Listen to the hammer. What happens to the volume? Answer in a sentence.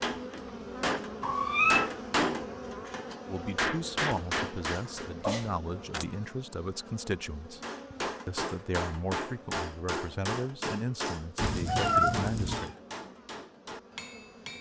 The volume of the hammer goes down.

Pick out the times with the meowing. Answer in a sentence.
You can hear the meowing from 1.2 to 1.9 s, from 5.2 to 6.0 s and from 11.3 to 12.8 s.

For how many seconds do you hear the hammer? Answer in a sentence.
You can hear the hammer for 12 seconds altogether.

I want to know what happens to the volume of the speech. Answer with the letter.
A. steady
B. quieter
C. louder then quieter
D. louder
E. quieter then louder
A.